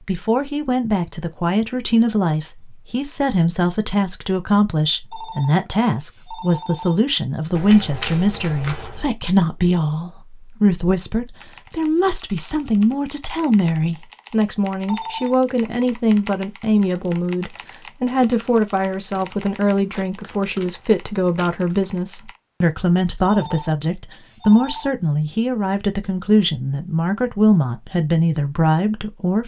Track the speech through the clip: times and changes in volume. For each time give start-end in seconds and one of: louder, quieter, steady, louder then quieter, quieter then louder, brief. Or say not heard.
0.0-29.4 steady.